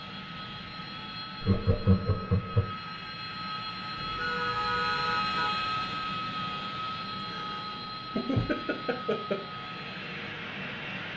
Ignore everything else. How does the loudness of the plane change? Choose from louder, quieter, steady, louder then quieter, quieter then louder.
louder then quieter.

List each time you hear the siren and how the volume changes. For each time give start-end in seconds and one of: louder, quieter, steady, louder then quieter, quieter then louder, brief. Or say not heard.
not heard.